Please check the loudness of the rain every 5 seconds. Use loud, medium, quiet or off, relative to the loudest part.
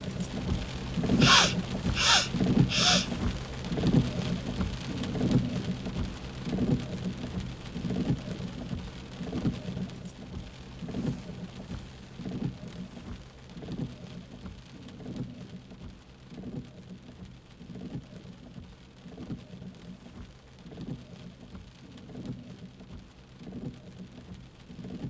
loud, loud, medium, quiet, quiet.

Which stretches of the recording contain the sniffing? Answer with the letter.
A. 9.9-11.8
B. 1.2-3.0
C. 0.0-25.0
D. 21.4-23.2
B.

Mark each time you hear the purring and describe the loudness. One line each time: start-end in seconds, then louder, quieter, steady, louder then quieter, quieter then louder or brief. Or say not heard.
not heard.